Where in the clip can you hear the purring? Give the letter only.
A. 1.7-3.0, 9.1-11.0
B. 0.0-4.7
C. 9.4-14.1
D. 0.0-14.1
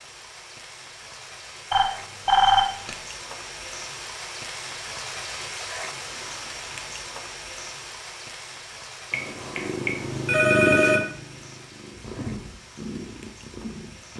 C.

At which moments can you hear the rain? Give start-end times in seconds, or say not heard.
0.0-14.1.